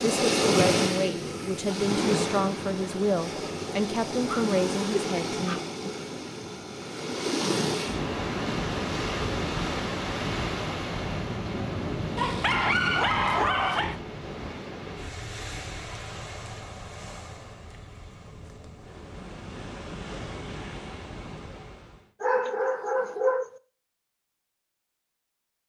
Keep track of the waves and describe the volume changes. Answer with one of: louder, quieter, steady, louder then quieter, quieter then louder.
quieter.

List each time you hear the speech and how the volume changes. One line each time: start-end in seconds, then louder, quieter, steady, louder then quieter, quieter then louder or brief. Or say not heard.
0.0-5.6 steady.